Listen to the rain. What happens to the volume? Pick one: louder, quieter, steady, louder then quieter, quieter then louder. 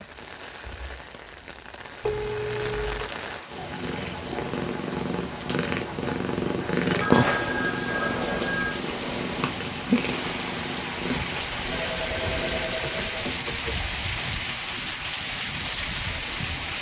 louder.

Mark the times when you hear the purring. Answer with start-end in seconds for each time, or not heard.
3.5-12.8.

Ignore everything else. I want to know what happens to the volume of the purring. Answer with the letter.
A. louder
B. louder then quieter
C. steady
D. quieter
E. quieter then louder
B.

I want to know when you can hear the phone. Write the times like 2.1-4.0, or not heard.
2.0-3.0, 7.0-8.8, 11.7-13.8.